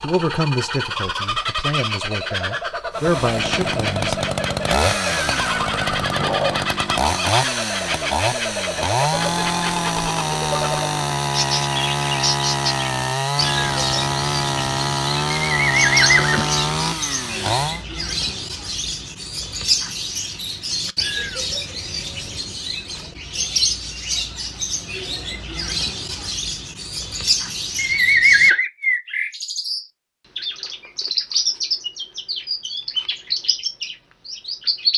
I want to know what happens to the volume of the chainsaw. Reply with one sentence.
The volume of the chainsaw stays about the same.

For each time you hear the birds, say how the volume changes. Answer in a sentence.
The birds can be heard from 0.0 to 34.9 s, at a steady volume.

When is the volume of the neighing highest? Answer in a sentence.
The loudest moment of the neighing is at 28 seconds.